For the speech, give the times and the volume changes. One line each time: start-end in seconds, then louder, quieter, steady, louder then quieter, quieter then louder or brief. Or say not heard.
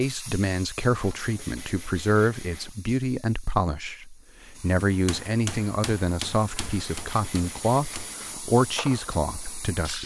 0.0-10.0 steady.